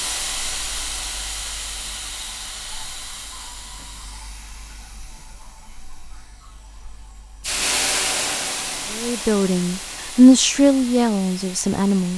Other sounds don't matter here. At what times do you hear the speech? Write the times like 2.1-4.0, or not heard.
8.9-12.1.